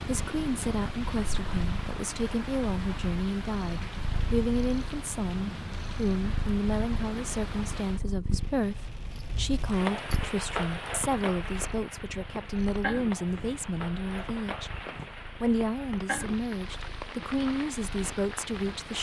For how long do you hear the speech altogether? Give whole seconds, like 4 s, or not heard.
18 s.